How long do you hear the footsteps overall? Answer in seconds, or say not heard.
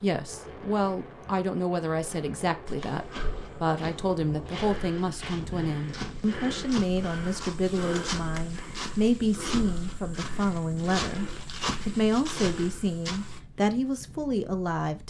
11 s.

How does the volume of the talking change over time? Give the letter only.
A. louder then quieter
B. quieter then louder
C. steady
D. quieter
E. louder
C.